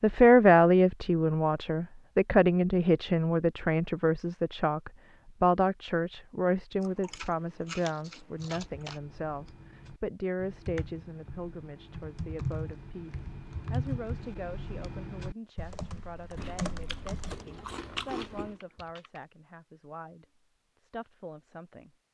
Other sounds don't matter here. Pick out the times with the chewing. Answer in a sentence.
The chewing can be heard from 6.8 to 9.0 s and from 16.4 to 18.6 s.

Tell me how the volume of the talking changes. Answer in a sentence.
The loudness of the talking goes down.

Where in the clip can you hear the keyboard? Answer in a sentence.
You can hear the keyboard from 8.4 to 19.2 s.